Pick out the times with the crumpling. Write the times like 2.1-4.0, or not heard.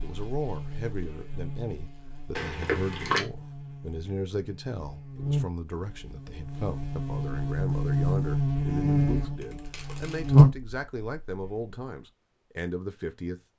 2.4-3.2, 9.4-10.4.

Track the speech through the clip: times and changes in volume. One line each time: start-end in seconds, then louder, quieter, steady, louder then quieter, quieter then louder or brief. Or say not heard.
0.0-13.4 steady.